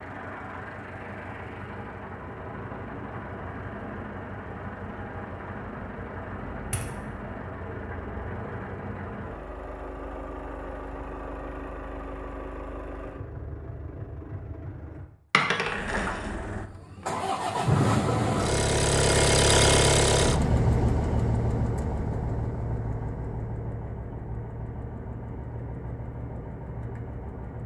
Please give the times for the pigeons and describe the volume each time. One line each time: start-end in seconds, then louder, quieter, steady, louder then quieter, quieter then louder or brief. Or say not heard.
not heard.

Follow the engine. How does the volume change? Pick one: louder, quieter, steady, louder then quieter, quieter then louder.
louder then quieter.